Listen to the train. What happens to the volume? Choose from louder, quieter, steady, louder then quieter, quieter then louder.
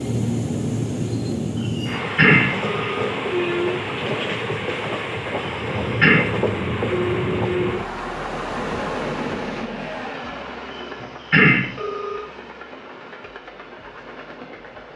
quieter.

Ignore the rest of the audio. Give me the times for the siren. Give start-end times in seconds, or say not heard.
not heard.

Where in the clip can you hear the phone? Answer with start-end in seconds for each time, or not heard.
1.6-3.0, 5.5-6.2, 10.8-12.2.